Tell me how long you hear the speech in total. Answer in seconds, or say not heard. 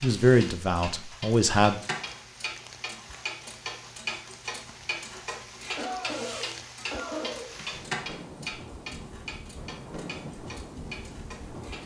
2 s.